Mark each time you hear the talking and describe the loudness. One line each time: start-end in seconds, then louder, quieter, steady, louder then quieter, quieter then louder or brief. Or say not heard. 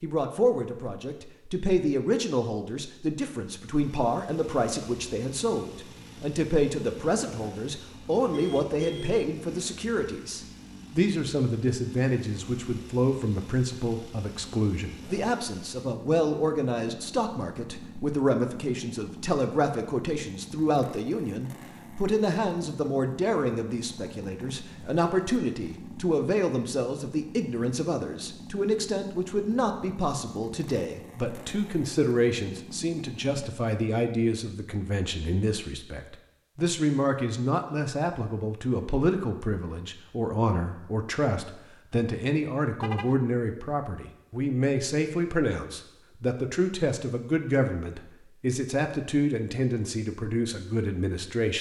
0.0-51.5 steady.